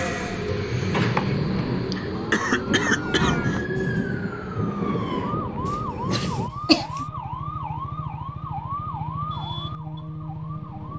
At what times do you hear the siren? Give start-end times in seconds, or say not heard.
2.1-10.9.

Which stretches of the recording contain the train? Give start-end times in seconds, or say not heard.
0.0-6.5.